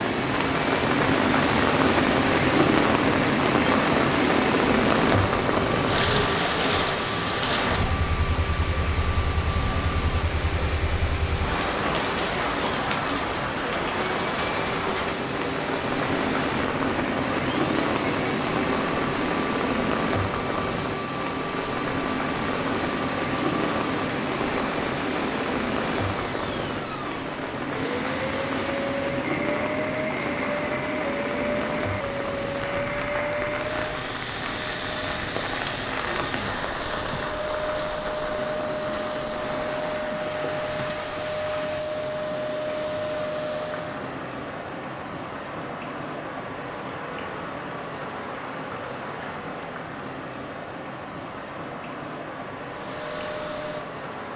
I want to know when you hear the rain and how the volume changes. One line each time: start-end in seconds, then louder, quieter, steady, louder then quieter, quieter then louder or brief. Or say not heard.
0.0-54.3 quieter.